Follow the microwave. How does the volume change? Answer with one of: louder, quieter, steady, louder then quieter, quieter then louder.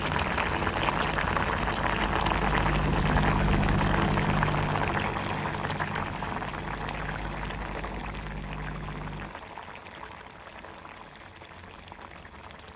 louder then quieter.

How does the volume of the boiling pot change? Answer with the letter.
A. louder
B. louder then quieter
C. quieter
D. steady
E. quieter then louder
C.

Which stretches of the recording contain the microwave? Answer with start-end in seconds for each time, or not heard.
0.0-9.3.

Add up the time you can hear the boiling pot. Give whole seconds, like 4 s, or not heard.
13 s.